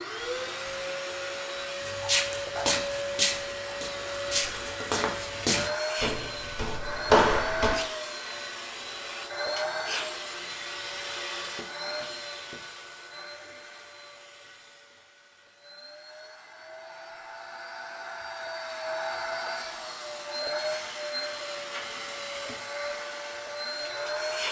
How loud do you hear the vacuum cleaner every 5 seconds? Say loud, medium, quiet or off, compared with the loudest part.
loud, loud, medium, medium, loud.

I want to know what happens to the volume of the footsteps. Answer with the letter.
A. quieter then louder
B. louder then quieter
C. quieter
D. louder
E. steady
A.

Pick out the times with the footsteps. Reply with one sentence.
You can hear the footsteps from 1.8 to 7.8 s.